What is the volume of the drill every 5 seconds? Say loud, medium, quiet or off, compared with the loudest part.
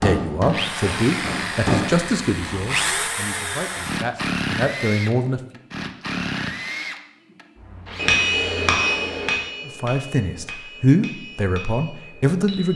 loud, medium, off.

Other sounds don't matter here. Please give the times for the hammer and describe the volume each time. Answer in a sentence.
The hammer can be heard briefly from 0.0 to 1.9 s; and from 8.0 to 12.7 s, getting quieter.